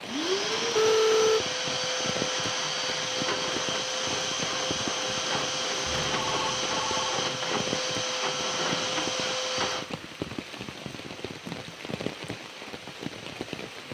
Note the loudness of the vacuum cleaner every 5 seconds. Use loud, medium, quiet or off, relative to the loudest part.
loud, loud, quiet.